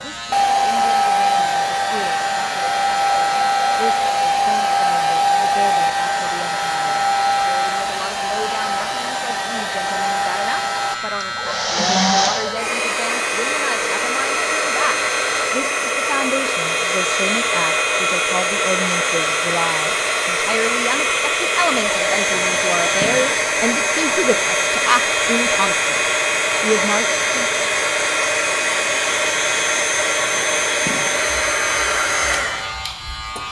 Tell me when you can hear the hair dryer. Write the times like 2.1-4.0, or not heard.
0.0-33.4.